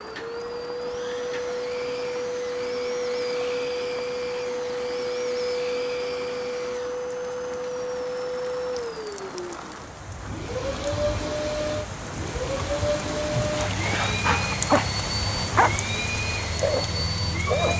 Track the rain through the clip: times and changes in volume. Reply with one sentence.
The rain can be heard from 0.0 to 17.7 s, getting louder.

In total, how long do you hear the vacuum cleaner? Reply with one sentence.
You can hear the vacuum cleaner for 18 seconds altogether.